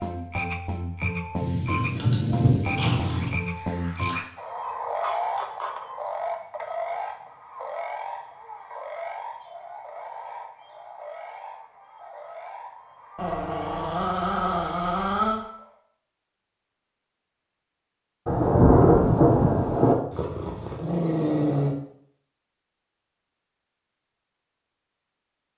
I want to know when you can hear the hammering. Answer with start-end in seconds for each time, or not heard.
not heard.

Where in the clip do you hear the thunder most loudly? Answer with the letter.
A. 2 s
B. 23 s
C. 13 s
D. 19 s
D.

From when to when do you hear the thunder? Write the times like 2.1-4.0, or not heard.
1.4-3.3, 18.2-19.9.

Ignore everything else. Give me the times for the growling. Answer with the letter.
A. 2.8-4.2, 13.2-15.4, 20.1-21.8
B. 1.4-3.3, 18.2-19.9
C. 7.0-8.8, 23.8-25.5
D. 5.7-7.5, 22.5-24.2
A.